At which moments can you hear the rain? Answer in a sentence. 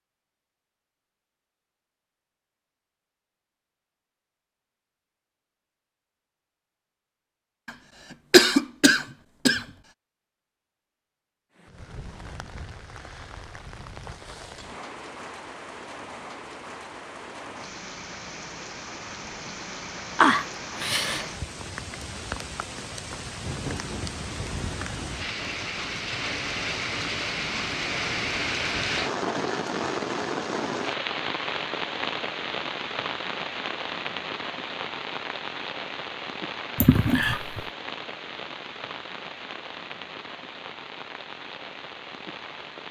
The rain can be heard from 11.6 to 42.8 s.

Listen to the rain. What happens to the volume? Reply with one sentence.
The loudness of the rain goes up, then down.